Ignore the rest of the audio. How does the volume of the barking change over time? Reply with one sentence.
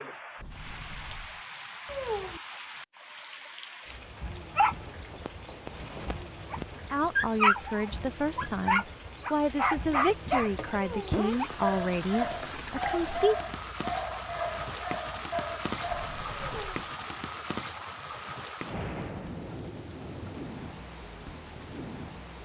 The volume of the barking goes up, then down.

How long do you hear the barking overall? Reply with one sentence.
You can hear the barking for 12 seconds altogether.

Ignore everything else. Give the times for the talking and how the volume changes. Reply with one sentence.
The talking can be heard from 6.8 to 13.5 s, at a steady volume.